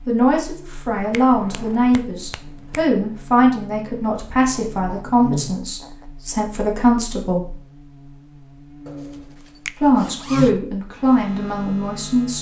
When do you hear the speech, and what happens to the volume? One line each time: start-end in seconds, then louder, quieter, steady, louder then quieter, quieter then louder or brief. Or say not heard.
0.1-7.5 steady
9.8-12.3 brief.